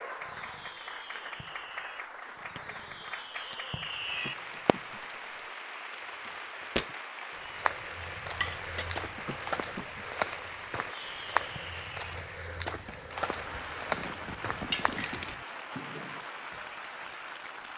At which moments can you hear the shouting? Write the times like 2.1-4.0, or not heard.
not heard.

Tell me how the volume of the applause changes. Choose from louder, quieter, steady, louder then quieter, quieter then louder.
steady.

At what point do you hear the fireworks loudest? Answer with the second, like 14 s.
4 s.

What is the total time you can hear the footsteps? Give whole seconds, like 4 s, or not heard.
9 s.